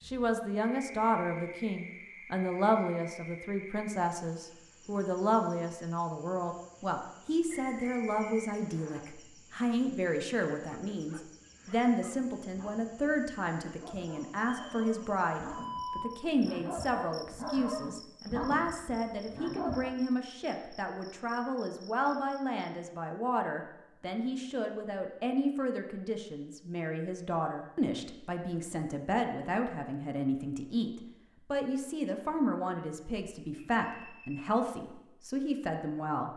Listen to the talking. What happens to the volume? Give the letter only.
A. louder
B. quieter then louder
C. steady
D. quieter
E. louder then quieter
C.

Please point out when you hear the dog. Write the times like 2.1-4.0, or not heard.
10.7-19.9.